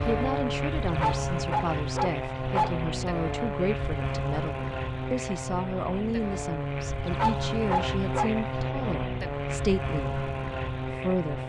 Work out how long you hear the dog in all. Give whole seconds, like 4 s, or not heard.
3 s.